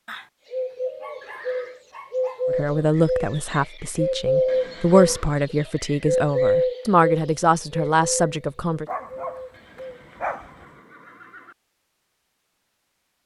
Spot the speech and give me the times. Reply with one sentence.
You can hear the speech from 2.5 to 8.8 s.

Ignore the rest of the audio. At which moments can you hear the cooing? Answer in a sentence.
You can hear the cooing from 0.5 to 9.9 s.